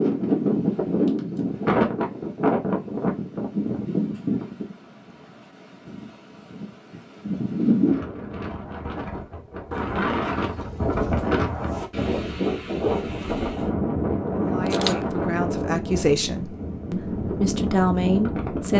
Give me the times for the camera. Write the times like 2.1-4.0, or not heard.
14.7-15.1.